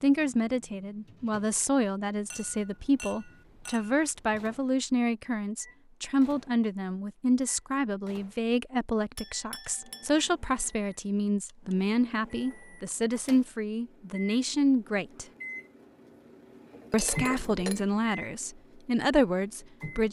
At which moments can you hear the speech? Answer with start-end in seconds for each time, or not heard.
0.0-15.2, 16.9-20.0.